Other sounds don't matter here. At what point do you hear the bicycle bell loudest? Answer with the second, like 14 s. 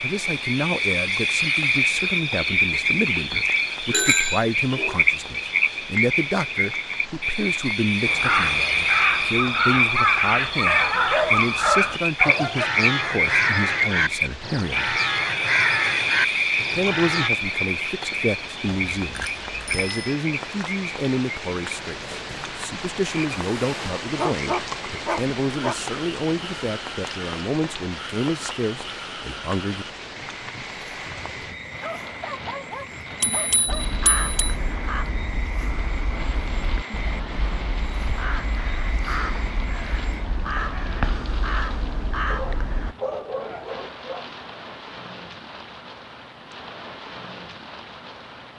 4 s.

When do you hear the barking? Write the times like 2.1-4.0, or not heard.
3.9-5.0, 10.7-12.7, 24.1-25.8, 31.1-33.9, 42.3-44.2.